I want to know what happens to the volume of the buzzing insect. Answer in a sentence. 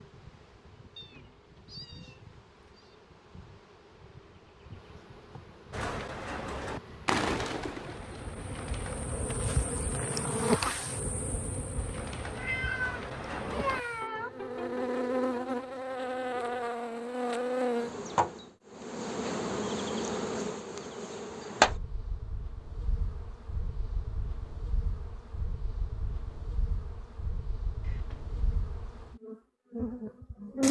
The volume of the buzzing insect goes up, then down.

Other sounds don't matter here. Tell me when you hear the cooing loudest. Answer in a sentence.
The loudest moment of the cooing is at 7 seconds.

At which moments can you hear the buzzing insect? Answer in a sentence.
You can hear the buzzing insect from 0.0 to 30.6 s.